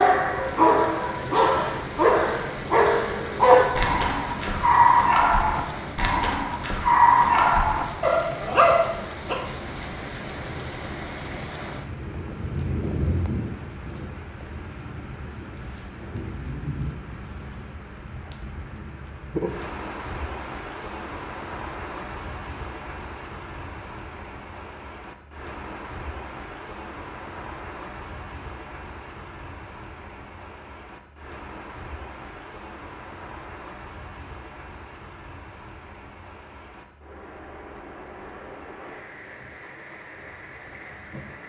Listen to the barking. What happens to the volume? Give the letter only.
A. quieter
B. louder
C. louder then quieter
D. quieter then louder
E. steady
E.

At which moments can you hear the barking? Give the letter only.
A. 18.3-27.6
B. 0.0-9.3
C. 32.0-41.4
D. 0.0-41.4
B.